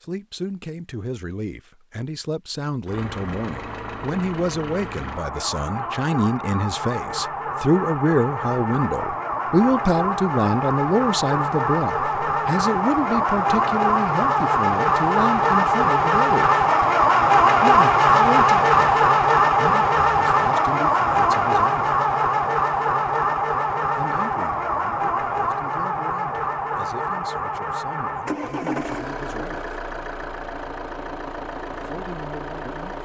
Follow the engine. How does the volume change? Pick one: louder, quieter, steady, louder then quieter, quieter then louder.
louder then quieter.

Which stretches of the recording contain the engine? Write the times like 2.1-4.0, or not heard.
2.9-32.9.